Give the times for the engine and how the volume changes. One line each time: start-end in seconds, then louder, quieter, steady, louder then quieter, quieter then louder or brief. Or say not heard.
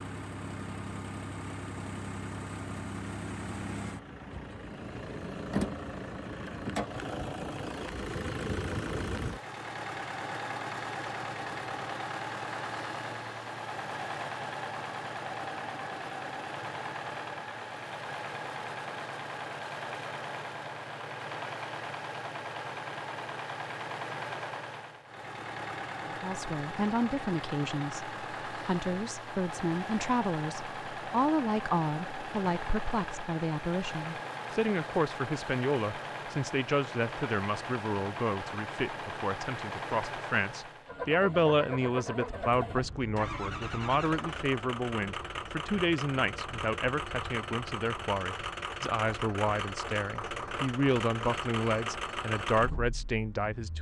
0.0-53.7 steady.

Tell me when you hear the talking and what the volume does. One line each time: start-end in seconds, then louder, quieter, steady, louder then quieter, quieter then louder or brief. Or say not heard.
26.1-53.7 steady.